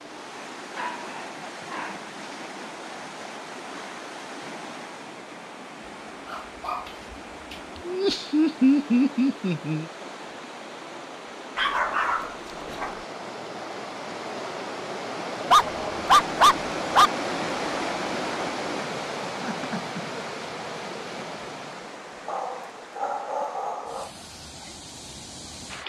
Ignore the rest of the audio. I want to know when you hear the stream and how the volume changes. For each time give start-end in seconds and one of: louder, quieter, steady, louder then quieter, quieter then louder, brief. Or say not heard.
0.0-25.8 louder then quieter.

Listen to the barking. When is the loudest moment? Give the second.
16 s.